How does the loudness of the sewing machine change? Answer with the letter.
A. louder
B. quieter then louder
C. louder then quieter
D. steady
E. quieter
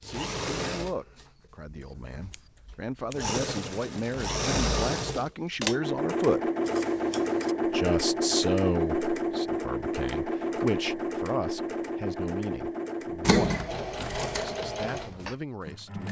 C.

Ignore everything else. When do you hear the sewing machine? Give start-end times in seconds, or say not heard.
0.0-16.0.